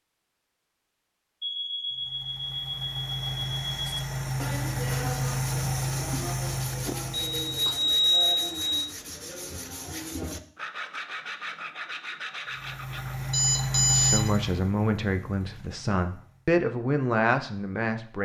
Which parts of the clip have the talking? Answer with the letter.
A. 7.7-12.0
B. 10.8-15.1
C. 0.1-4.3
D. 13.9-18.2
D.